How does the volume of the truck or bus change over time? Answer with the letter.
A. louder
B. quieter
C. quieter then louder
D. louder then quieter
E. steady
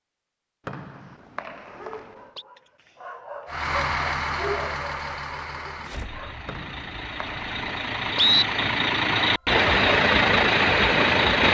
C.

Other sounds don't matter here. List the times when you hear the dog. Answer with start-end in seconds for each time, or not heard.
1.1-6.4.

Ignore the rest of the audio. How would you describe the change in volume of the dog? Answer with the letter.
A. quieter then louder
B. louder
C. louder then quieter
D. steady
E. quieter
C.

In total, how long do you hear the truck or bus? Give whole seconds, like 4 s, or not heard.
8 s.